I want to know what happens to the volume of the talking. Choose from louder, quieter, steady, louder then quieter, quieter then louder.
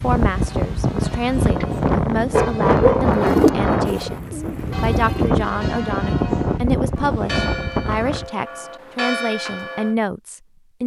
steady.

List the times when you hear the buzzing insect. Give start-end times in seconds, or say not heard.
not heard.